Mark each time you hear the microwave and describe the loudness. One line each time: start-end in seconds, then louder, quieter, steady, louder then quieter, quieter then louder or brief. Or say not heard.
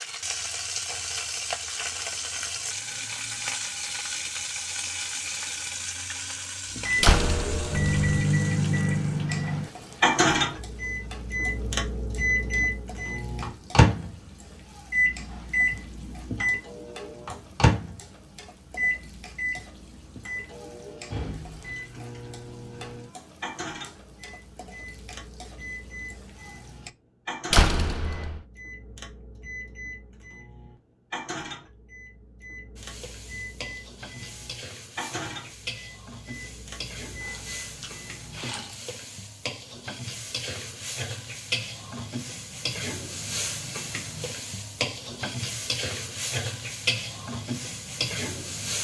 6.8-38.5 quieter.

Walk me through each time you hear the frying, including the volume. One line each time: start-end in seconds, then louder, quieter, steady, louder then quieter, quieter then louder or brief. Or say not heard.
0.0-26.9 quieter
32.8-48.7 louder.